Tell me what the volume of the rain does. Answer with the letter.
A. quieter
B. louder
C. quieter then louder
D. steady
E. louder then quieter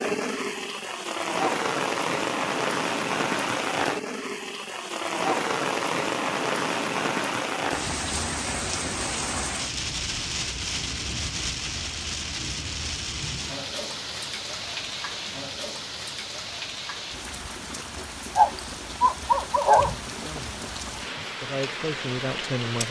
A.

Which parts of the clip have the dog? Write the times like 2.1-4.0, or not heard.
18.4-19.9.